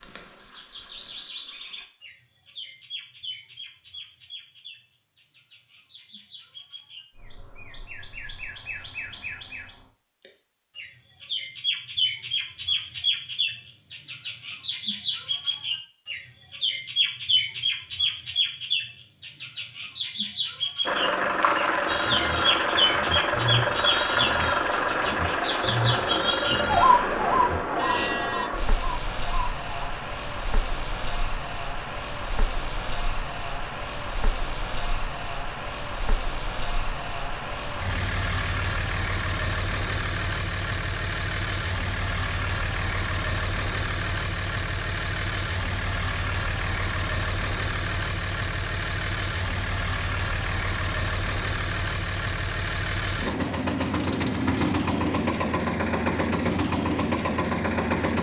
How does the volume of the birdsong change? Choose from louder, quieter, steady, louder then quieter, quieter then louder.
louder.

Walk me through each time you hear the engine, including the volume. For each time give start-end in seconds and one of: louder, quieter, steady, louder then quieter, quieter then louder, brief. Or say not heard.
20.9-58.1 quieter then louder.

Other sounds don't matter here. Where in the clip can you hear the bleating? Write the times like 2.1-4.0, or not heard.
21.9-28.4.